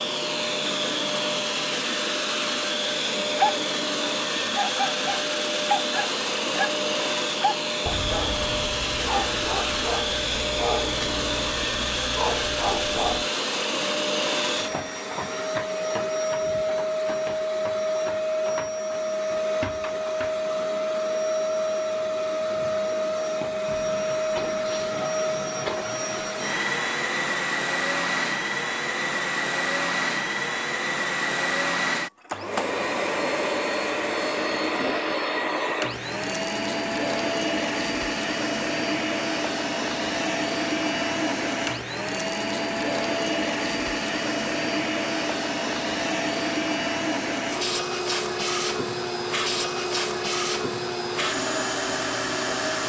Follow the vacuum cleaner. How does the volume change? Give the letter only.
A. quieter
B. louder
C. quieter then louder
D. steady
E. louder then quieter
D.